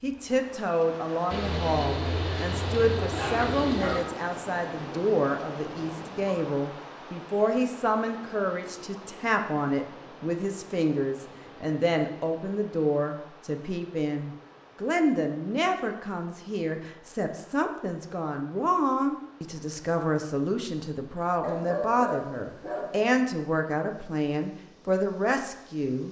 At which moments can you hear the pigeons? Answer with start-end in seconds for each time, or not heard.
1.3-4.0.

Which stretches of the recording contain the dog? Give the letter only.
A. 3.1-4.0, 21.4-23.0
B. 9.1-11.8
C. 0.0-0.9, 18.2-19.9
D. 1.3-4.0
A.